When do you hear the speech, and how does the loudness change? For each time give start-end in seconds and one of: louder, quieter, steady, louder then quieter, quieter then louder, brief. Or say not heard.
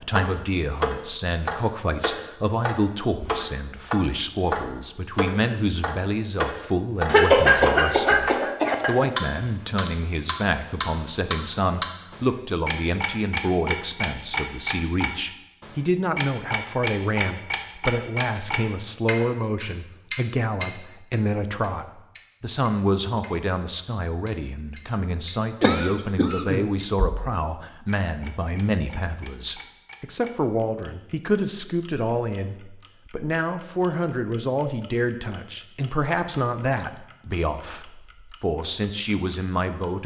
0.0-40.0 steady.